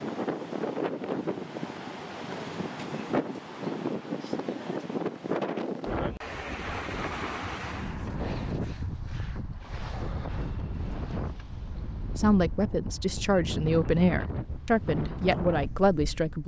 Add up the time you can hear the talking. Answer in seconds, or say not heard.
4 s.